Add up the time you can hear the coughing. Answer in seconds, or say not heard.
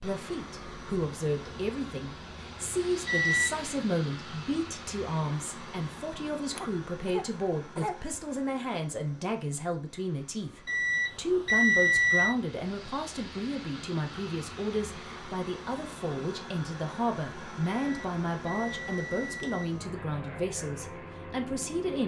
2 s.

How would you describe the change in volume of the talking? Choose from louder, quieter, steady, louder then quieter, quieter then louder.
steady.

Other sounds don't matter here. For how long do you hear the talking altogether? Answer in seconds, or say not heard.
22 s.